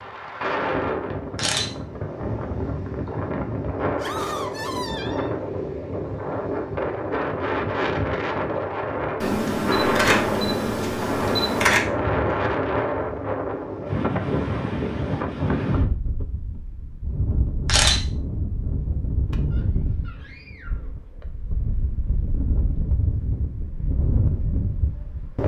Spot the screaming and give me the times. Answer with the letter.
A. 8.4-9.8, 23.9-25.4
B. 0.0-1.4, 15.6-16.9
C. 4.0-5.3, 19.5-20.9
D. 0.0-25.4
C.